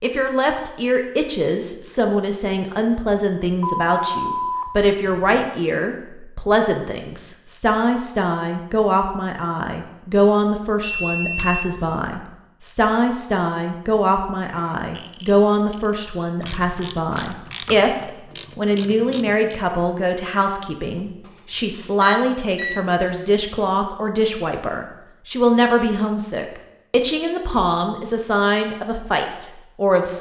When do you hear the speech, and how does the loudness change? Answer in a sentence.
The speech can be heard from 0.0 to 30.1 s, at a steady volume.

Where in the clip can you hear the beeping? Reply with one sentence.
The beeping can be heard from 3.6 to 5.5 s, from 10.8 to 12.1 s and from 21.2 to 22.9 s.